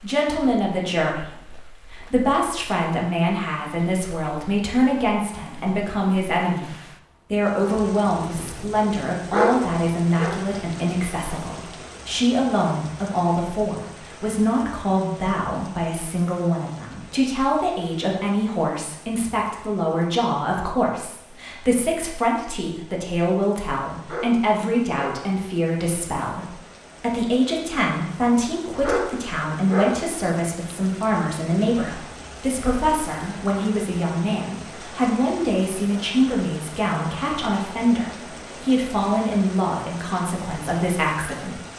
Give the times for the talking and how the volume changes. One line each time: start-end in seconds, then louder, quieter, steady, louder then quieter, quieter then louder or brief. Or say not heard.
0.0-41.6 steady.